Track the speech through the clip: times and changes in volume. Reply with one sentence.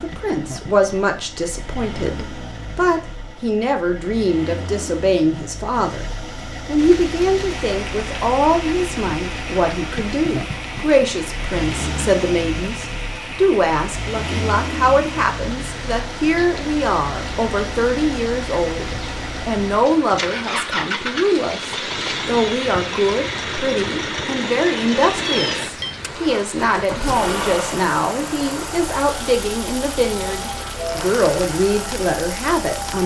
You can hear the speech from 0.0 to 33.0 s, at a steady volume.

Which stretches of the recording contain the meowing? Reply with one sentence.
The meowing can be heard from 25.2 to 26.0 s.